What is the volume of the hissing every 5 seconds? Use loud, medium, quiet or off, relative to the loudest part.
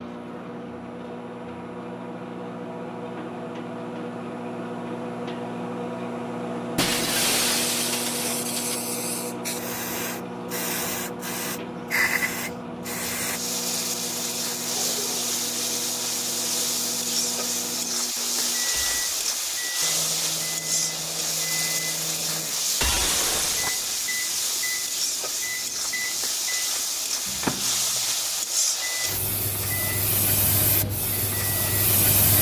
off, medium, loud, loud, loud, loud, loud.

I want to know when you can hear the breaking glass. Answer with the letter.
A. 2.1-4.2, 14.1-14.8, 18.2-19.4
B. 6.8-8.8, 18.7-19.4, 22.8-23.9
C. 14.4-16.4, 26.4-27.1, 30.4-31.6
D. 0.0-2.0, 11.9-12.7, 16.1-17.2
B.